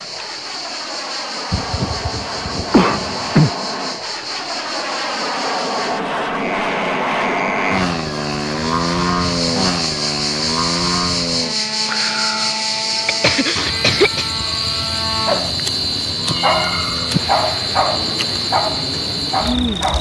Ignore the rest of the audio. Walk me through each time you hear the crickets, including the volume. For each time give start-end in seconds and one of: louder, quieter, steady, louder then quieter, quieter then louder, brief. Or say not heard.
0.0-19.9 louder.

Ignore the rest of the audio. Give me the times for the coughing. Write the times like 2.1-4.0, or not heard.
1.5-3.5, 13.1-14.3.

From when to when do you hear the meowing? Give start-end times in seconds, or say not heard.
16.2-17.2.